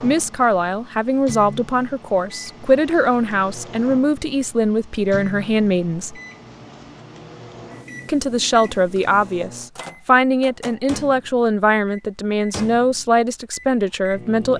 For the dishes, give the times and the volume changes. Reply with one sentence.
You can't hear the dishes here.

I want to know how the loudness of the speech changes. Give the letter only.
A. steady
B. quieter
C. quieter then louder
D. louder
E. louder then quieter
A.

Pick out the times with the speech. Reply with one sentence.
The speech can be heard from 0.0 to 6.2 s and from 8.1 to 14.5 s.